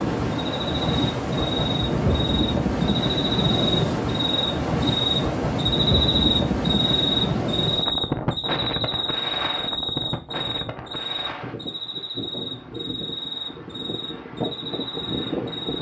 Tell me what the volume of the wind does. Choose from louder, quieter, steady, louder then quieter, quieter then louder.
quieter.